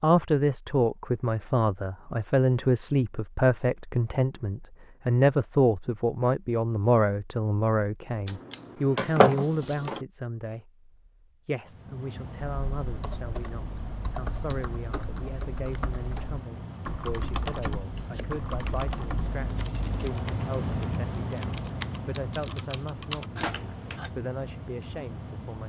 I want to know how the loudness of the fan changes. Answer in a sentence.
The volume of the fan goes up, then down.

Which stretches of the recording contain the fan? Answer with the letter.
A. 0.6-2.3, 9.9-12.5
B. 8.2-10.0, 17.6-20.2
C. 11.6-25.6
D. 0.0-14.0
C.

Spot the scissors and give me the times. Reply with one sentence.
You can hear the scissors from 8.2 to 10.0 s and from 17.6 to 20.2 s.